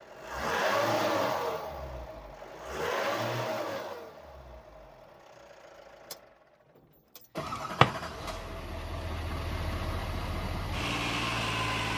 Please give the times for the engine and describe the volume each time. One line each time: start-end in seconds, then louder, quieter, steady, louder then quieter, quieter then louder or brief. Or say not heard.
0.0-11.9 quieter then louder.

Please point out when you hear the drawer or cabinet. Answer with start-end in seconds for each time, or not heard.
7.5-8.0.